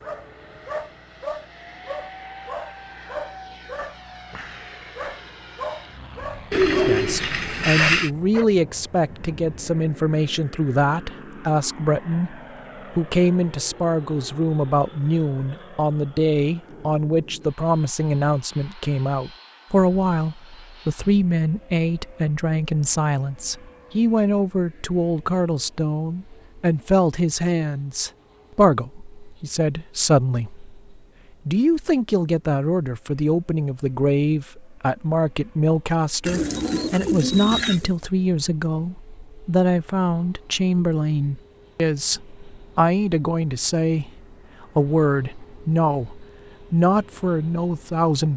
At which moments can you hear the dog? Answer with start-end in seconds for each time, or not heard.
0.0-7.0, 7.8-8.4.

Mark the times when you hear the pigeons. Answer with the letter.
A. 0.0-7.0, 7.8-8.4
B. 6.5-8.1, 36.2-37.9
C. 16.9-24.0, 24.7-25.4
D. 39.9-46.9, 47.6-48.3
B.